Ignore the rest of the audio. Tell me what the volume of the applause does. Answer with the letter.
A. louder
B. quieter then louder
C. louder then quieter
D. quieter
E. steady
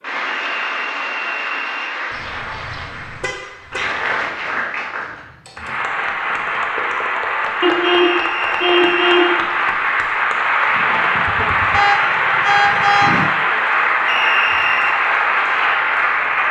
A.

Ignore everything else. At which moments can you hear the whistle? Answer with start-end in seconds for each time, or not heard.
0.2-1.9, 7.8-9.3, 14.1-15.0.